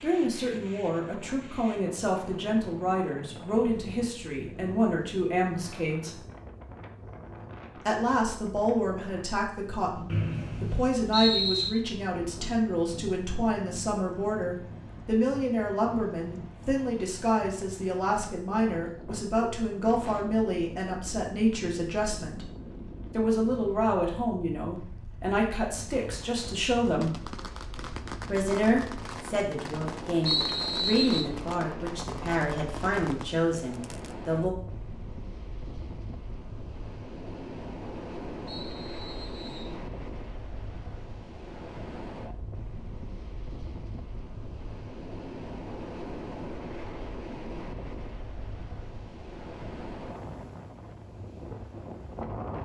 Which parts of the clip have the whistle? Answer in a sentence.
You can hear the whistle from 10.1 to 11.7 s, from 30.2 to 31.2 s and from 38.5 to 39.8 s.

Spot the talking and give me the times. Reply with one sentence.
The talking can be heard from 0.0 to 6.2 s, from 7.8 to 22.4 s, from 23.1 to 27.1 s and from 28.2 to 34.5 s.